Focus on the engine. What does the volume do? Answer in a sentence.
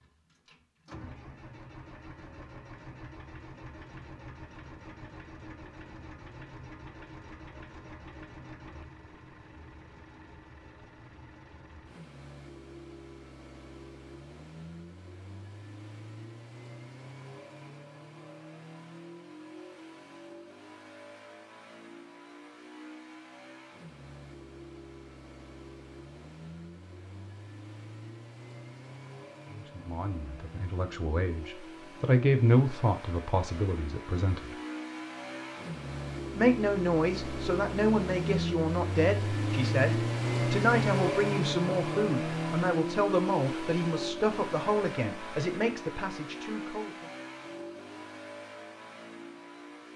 The volume of the engine goes up.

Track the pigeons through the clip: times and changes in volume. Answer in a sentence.
The pigeons can't be heard in this clip.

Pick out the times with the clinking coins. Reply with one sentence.
You can't hear the clinking coins here.